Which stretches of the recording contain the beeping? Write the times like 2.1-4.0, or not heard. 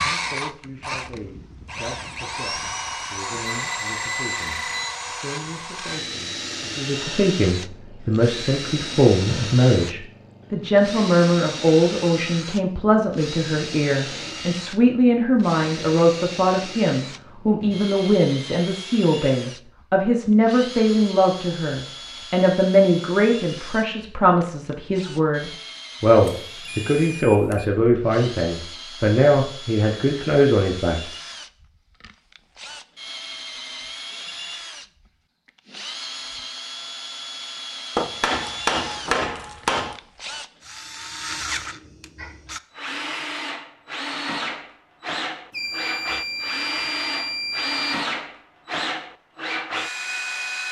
3.5-5.0, 26.4-27.6, 45.5-48.1.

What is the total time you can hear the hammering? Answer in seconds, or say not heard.
2 s.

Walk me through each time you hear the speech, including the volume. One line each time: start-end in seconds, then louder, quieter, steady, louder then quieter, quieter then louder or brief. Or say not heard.
0.0-31.0 louder.